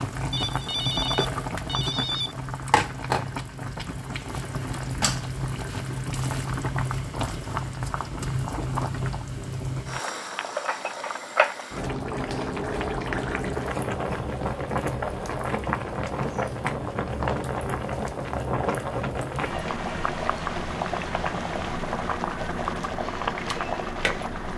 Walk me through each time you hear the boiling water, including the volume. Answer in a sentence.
The boiling water can be heard from 0.0 to 24.5 s, at a steady volume.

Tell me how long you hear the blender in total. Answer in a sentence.
You can't hear the blender here.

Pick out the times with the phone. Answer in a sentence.
The phone can be heard from 0.3 to 2.4 s.